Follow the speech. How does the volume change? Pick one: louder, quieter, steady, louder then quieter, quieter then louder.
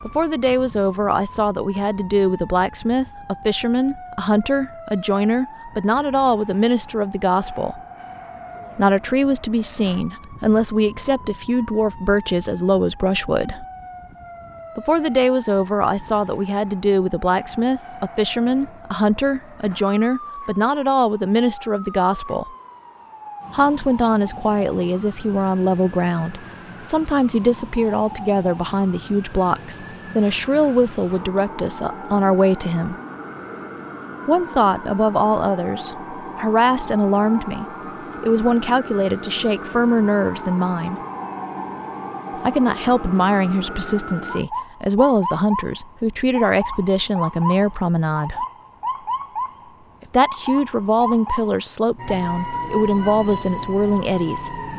steady.